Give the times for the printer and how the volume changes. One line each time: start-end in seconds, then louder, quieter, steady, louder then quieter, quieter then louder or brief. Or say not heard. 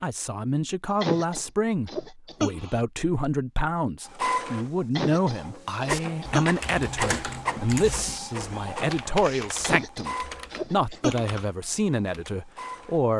4.0-13.1 quieter.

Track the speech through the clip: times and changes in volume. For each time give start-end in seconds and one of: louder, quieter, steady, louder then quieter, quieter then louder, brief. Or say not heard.
0.0-13.1 steady.